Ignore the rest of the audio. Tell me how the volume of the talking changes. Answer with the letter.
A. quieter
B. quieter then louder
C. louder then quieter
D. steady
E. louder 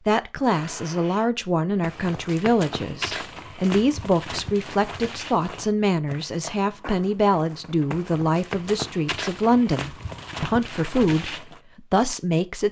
D.